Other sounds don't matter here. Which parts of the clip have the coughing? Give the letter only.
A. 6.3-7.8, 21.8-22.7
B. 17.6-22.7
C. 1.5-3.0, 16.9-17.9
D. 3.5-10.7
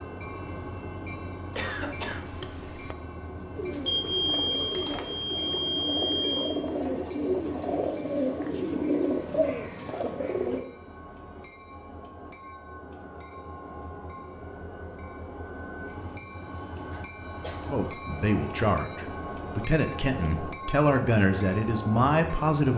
C.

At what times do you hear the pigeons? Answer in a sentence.
The pigeons can be heard from 3.5 to 10.7 s.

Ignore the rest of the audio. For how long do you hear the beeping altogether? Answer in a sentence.
You can hear the beeping for 3 seconds altogether.